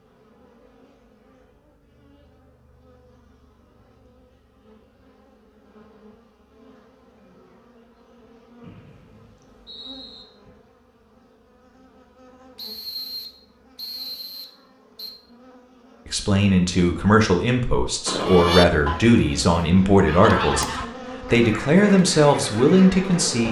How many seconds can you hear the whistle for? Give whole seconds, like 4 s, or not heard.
4 s.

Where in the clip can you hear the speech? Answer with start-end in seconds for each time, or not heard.
16.1-23.4.